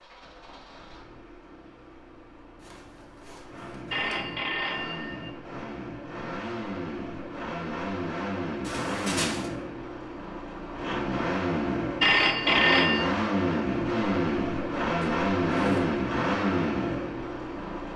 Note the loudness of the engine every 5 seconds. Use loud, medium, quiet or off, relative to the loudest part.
quiet, medium, loud, loud.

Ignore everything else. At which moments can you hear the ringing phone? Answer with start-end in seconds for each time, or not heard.
3.9-5.3, 12.0-13.1.